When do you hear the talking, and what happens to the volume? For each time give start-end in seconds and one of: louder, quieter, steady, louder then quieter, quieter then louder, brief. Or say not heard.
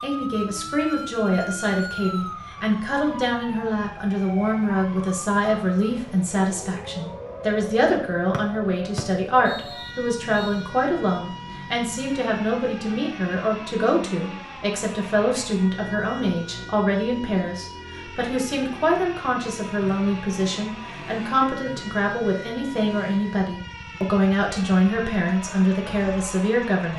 0.0-26.9 steady.